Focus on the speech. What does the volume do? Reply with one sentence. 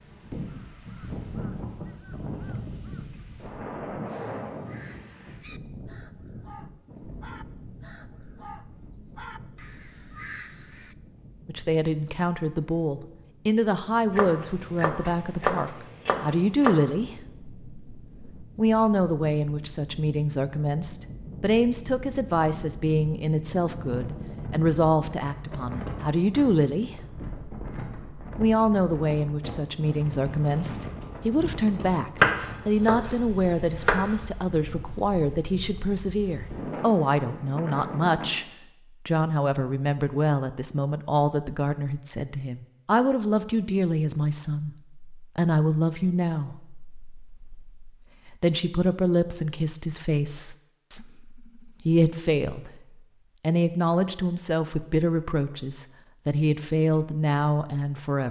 The volume of the speech stays about the same.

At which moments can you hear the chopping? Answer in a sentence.
The chopping can be heard from 14.1 to 16.8 s and from 32.1 to 34.2 s.